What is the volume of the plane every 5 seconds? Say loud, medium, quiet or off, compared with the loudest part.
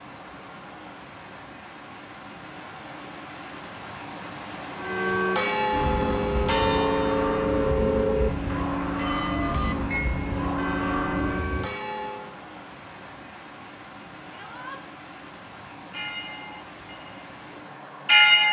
off, loud, loud, off.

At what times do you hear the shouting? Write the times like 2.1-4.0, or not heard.
14.3-14.8.